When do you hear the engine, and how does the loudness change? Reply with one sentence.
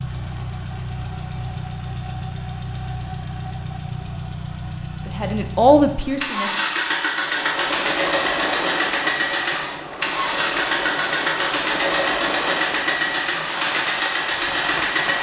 You can hear the engine from 0.0 to 15.1 s, getting louder.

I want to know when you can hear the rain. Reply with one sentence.
The rain can be heard from 7.0 to 15.1 s.